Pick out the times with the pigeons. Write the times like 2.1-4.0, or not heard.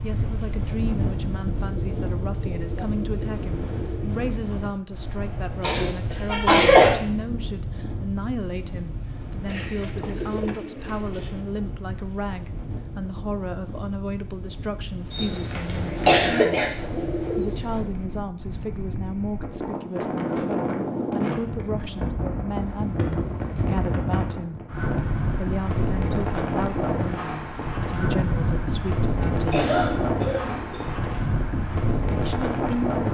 1.6-4.2, 9.4-11.4, 15.2-17.9, 22.5-23.9, 29.2-30.8.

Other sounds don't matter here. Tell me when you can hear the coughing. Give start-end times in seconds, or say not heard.
5.6-6.9, 15.1-16.7, 29.5-30.9.